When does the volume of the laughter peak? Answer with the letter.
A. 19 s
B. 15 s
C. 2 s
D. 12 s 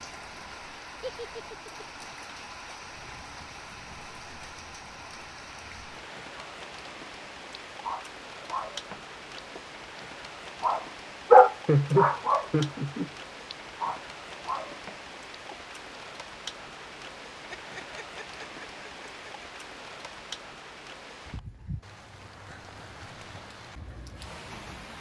D.